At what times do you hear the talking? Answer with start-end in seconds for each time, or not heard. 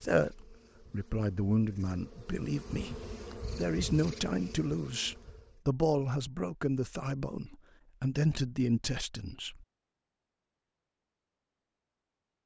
0.0-9.7.